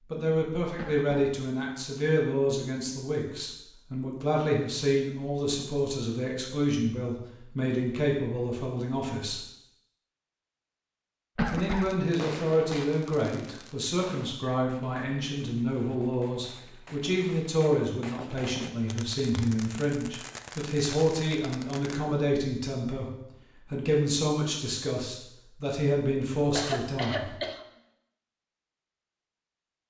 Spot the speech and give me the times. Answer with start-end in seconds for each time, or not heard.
0.1-9.4, 11.5-23.1, 23.7-27.4.